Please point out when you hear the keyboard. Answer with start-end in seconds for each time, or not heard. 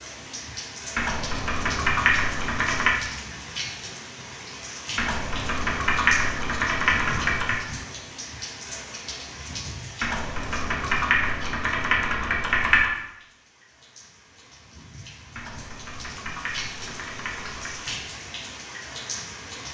0.9-3.0, 5.0-7.7, 10.0-12.9, 15.3-17.9.